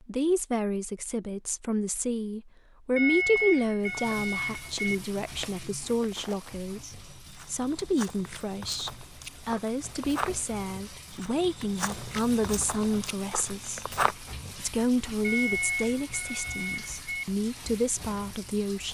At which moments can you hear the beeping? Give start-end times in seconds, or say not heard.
3.0-5.0, 15.2-17.2.